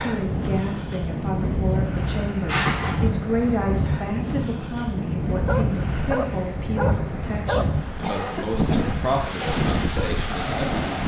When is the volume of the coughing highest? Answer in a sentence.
The volume of the coughing peaks at 3 seconds.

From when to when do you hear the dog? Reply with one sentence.
You can hear the dog from 5.5 to 10.2 s.